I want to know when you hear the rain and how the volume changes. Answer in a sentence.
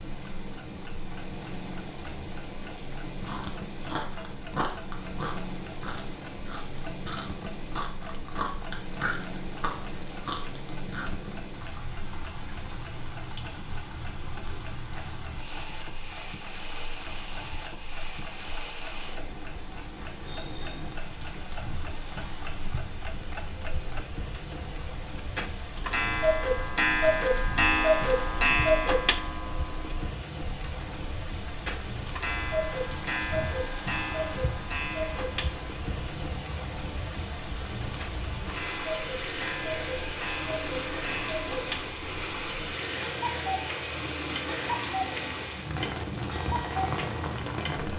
You can hear the rain from 0.0 to 47.9 s, getting louder.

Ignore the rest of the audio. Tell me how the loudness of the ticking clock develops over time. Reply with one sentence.
The volume of the ticking clock goes up, then down.